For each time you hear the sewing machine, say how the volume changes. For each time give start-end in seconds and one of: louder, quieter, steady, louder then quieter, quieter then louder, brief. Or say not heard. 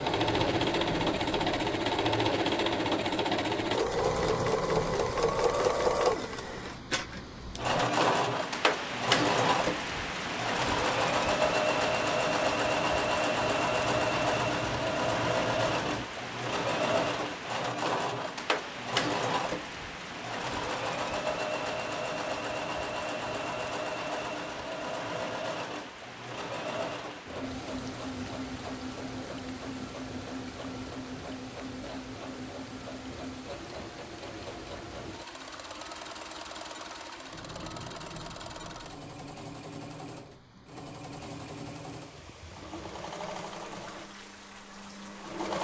0.0-45.5 quieter.